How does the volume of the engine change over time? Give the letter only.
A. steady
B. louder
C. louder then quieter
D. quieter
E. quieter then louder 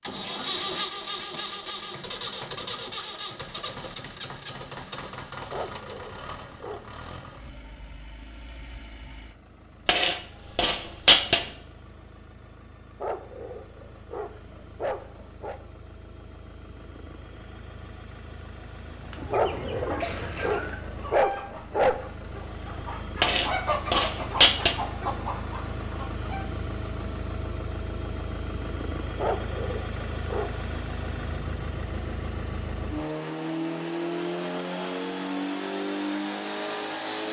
E.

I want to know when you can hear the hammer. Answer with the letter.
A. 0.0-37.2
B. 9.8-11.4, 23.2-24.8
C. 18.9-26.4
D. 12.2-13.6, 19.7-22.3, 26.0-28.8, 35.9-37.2
B.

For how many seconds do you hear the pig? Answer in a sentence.
The pig can't be heard in this clip.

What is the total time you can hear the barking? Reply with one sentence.
You can hear the barking for 8 seconds altogether.